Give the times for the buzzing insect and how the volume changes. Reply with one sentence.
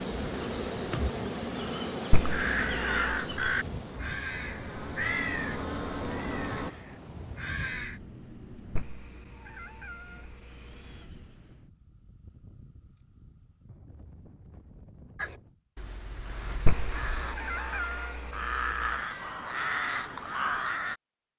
You can hear the buzzing insect from 0.0 to 6.8 s, getting quieter then louder.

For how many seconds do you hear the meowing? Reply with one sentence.
The meowing can be heard for 6 seconds in total.